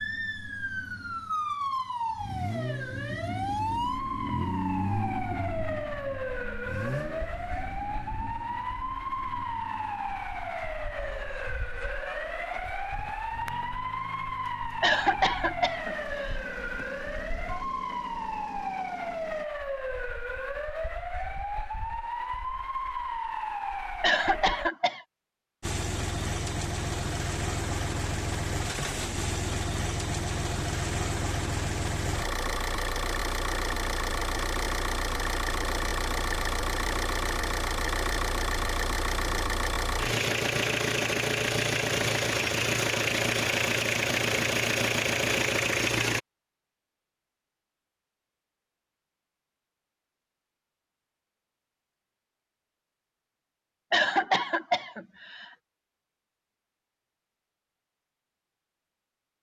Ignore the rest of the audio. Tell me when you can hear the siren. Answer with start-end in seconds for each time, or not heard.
0.0-24.7.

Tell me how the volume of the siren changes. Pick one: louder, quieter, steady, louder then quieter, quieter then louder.
steady.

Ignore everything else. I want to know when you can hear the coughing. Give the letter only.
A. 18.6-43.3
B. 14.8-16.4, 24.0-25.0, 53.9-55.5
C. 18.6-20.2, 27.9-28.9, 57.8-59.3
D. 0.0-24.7
B.